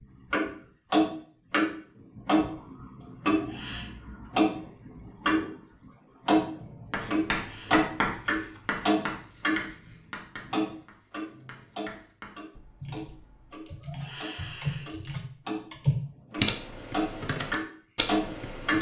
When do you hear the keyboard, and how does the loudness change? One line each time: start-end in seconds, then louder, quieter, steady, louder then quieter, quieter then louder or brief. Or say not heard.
12.8-18.7 louder then quieter.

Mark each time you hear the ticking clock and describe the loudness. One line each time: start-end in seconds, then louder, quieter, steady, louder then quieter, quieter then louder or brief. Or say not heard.
0.3-5.5 quieter then louder
6.2-18.7 quieter then louder.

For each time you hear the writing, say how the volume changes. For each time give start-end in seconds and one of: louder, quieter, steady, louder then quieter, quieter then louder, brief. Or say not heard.
6.9-13.5 quieter.